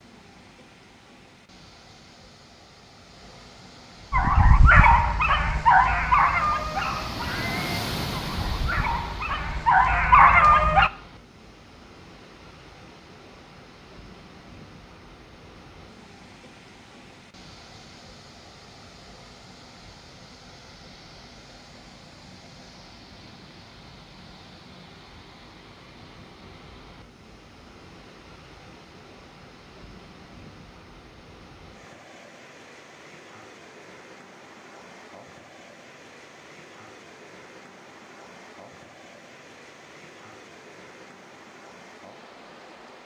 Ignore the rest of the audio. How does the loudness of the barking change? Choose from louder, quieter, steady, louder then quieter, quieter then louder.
quieter then louder.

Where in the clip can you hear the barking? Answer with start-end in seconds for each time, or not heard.
4.1-10.9.